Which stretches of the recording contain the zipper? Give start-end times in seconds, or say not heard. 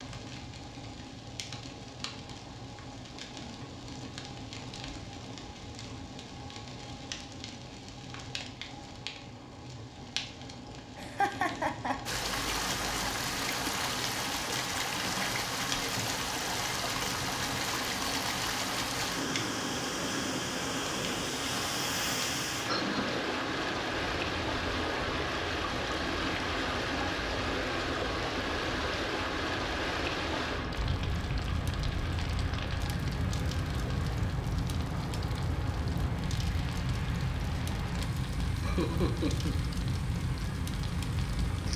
not heard.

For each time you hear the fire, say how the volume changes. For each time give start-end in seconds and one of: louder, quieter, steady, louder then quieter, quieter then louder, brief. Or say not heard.
0.0-41.7 louder.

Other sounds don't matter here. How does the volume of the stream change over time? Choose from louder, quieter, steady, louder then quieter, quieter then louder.
quieter.